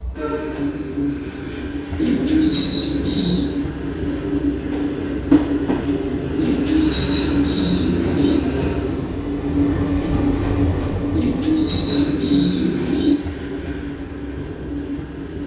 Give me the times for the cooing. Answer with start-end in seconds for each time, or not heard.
1.9-3.5, 6.3-8.4, 11.1-13.2.